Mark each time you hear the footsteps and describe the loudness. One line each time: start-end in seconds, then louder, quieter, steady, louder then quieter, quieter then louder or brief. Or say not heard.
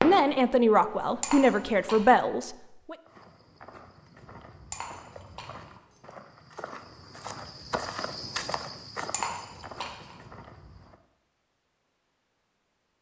3.0-11.0 louder then quieter.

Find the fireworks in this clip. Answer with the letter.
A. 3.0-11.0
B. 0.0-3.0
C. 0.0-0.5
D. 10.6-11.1
C.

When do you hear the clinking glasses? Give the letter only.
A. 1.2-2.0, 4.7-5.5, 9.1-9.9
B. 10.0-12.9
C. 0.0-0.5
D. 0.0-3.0
A.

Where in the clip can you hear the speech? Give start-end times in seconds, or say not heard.
0.0-3.0.